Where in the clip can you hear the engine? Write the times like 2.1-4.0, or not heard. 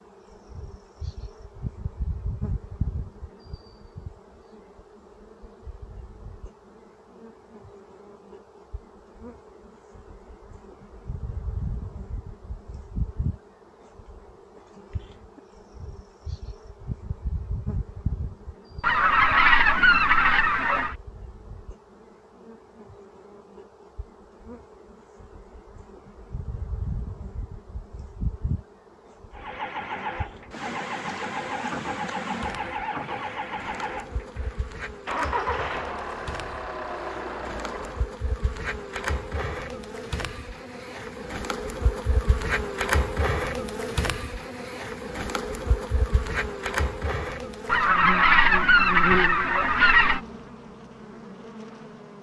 29.3-38.1.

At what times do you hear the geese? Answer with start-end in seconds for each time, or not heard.
18.8-20.9, 47.6-50.2.